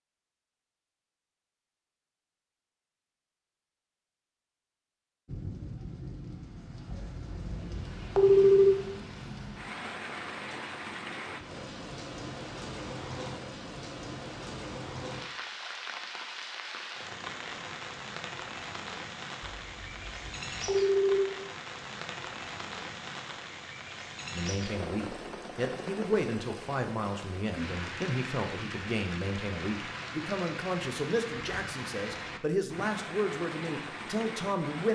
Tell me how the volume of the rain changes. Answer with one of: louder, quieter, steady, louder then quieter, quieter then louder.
steady.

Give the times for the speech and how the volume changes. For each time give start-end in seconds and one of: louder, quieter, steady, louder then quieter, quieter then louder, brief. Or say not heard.
24.3-34.8 steady.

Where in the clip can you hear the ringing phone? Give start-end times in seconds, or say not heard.
6.9-8.8, 19.6-21.2.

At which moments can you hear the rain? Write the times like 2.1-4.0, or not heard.
5.2-34.8.